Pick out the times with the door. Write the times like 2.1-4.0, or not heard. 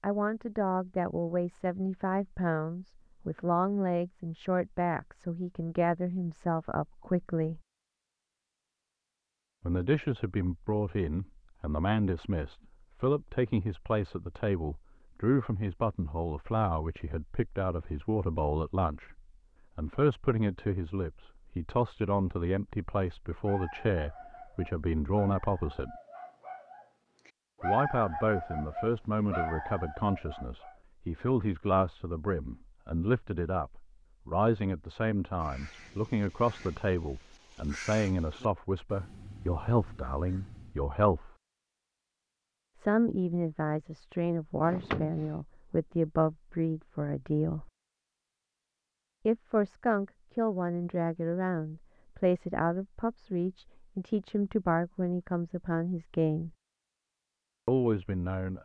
44.6-45.4.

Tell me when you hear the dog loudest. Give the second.
28 s.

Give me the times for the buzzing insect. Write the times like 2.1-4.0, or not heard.
not heard.